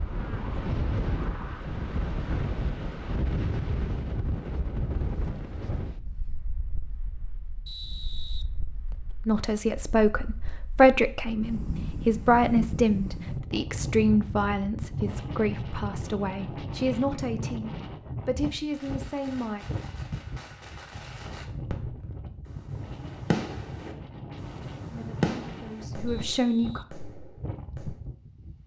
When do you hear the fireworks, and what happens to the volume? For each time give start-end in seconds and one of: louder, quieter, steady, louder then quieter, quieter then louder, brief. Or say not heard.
18.7-28.0 louder then quieter.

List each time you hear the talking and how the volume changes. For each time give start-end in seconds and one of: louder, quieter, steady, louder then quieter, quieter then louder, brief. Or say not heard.
9.2-19.6 quieter
24.9-26.9 brief.